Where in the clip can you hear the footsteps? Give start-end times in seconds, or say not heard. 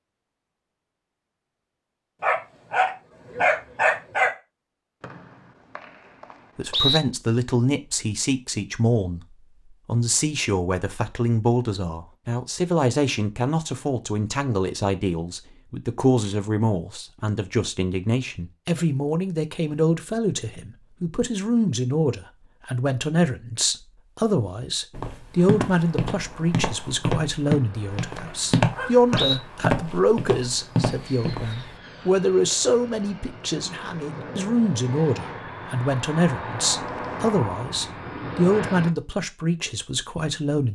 24.9-31.6.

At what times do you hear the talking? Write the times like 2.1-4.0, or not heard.
6.5-40.7.